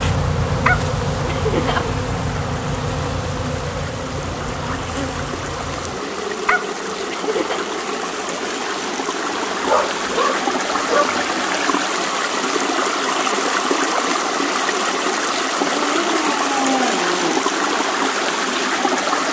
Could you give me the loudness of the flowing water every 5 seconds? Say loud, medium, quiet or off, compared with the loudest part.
quiet, medium, loud, loud.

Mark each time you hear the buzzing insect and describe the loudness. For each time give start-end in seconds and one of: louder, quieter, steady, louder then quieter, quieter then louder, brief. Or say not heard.
0.0-11.7 quieter.